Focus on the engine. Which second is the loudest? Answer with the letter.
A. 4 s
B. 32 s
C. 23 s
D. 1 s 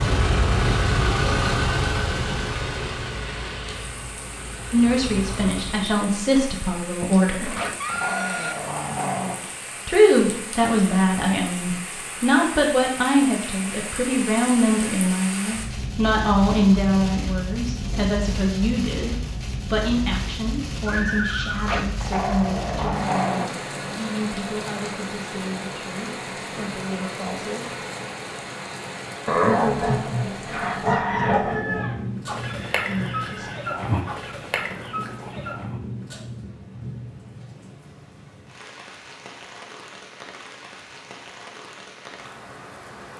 D.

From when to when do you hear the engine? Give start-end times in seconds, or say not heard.
0.0-6.0.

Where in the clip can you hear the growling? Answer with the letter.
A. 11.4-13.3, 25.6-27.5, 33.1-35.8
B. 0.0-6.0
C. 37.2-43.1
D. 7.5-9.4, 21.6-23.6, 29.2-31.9
D.